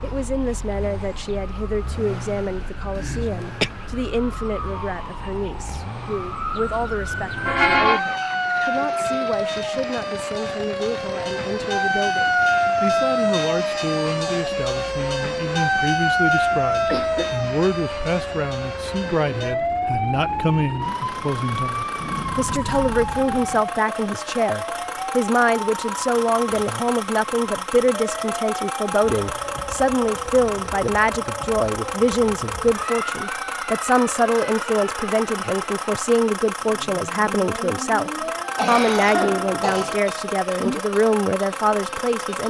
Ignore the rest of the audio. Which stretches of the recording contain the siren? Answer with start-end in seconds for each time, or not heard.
0.0-42.4.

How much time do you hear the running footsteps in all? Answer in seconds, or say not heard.
not heard.